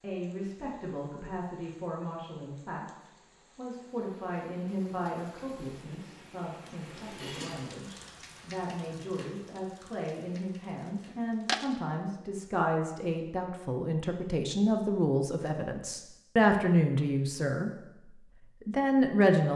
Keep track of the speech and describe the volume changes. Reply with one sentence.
The volume of the speech goes up.